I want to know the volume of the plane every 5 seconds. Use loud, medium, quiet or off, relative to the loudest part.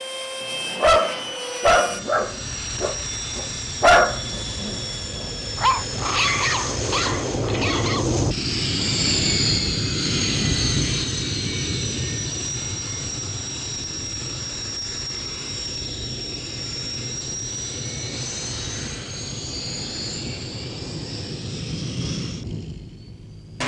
medium, loud, loud, medium, medium.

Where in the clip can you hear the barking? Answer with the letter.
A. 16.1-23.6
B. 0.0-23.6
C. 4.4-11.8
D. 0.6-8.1
D.